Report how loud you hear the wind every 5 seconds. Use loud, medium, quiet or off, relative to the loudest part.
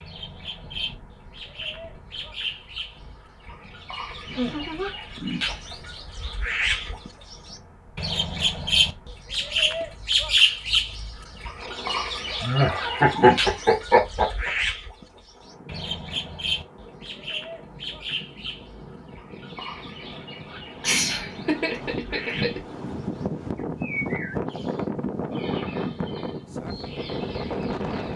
quiet, quiet, quiet, quiet, loud, loud.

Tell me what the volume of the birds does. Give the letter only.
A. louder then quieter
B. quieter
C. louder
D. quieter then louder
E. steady
A.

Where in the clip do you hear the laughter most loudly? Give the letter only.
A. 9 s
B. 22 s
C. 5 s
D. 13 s
D.